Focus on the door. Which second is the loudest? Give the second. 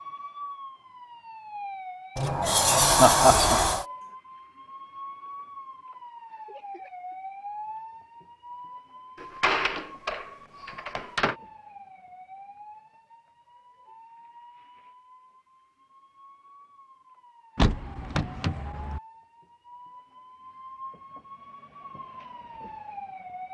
3 s.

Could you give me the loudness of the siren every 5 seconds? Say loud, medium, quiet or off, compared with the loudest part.
loud, loud, medium, medium, loud.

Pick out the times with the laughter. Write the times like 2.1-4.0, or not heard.
3.0-3.8.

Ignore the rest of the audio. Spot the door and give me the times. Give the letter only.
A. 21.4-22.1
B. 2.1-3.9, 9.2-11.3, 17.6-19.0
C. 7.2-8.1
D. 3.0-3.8
B.